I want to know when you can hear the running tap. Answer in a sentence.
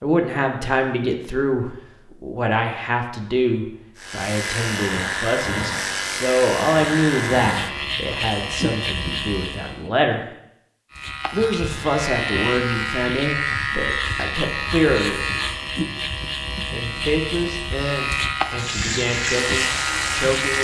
The running tap can be heard from 18.4 to 20.5 s.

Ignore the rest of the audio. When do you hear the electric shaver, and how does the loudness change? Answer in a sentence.
You can hear the electric shaver from 4.0 to 9.9 s, at a steady volume; and from 10.9 to 20.5 s, at a steady volume.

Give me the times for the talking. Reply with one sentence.
You can hear the talking from 0.0 to 10.2 s, from 11.3 to 15.2 s and from 16.6 to 20.5 s.